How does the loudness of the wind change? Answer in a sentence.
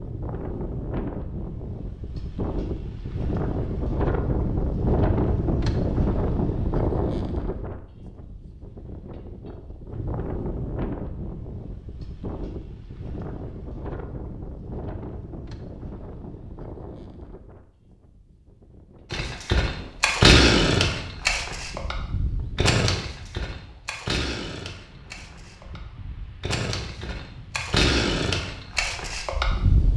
The volume of the wind goes down.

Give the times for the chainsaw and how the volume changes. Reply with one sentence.
You can hear the chainsaw from 19.1 to 29.9 s, getting quieter then louder.